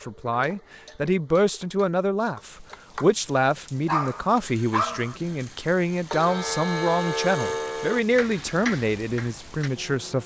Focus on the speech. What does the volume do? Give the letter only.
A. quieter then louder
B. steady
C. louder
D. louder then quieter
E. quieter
B.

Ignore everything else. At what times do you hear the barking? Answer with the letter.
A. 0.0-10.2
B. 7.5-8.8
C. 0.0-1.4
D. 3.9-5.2
D.